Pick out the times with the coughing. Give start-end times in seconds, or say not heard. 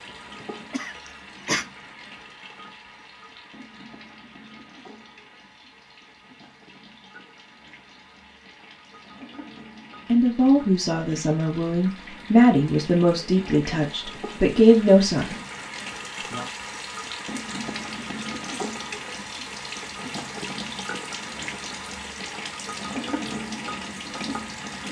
0.7-1.6.